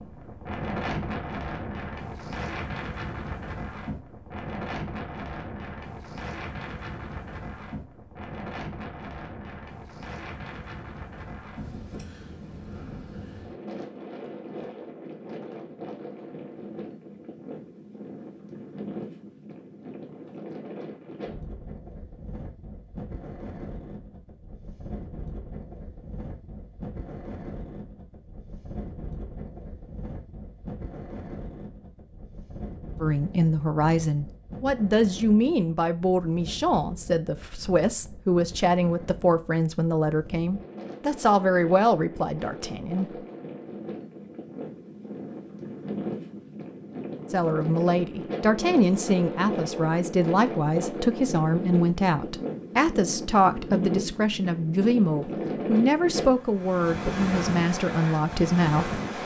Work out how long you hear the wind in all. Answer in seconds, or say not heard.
59 s.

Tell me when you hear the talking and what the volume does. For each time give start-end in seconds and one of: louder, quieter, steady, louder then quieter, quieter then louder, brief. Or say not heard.
33.0-43.0 steady
47.3-59.0 steady.